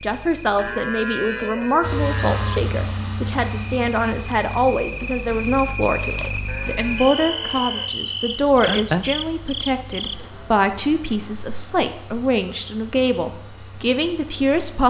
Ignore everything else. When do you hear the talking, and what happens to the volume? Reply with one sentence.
You can hear the talking from 0.0 to 14.8 s, at a steady volume.